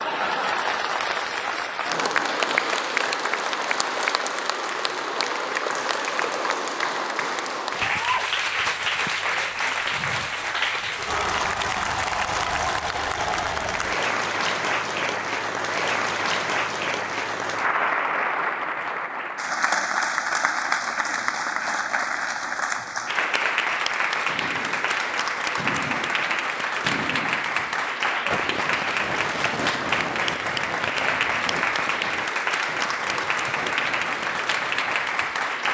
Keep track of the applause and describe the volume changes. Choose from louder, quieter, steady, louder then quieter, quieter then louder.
steady.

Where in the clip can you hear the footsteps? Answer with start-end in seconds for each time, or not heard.
not heard.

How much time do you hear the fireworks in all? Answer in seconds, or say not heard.
11 s.